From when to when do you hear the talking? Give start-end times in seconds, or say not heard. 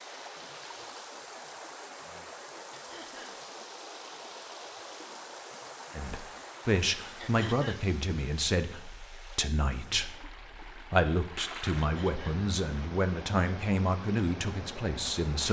6.0-15.4.